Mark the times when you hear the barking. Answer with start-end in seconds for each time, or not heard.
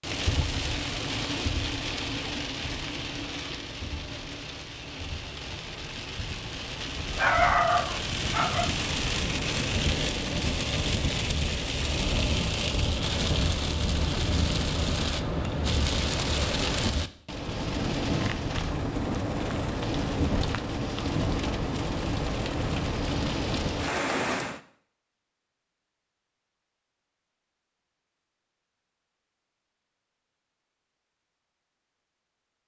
7.2-8.7.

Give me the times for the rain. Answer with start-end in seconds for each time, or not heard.
0.0-24.6.